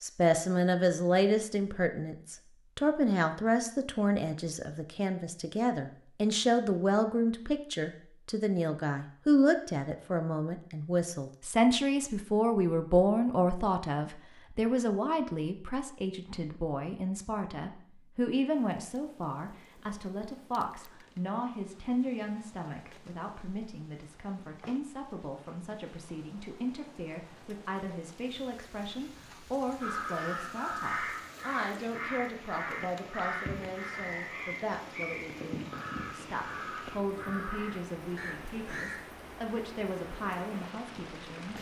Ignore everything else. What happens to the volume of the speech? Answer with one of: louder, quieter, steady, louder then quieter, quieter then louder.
quieter.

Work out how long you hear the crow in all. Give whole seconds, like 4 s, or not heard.
9 s.